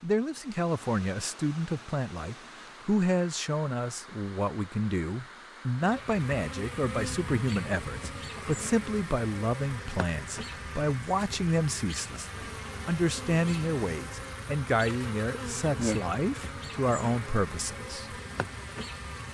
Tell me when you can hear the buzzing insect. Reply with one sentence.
The buzzing insect can be heard from 5.8 to 19.2 s.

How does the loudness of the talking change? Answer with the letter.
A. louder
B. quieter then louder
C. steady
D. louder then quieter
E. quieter
C.